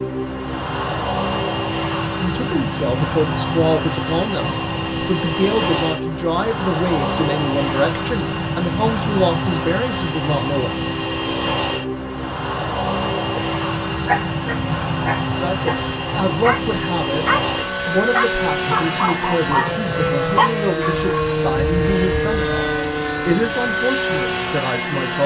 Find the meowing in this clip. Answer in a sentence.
You can't hear the meowing here.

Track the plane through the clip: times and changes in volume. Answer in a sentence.
The plane can be heard from 0.0 to 25.2 s, at a steady volume.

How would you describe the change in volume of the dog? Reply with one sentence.
The volume of the dog goes down.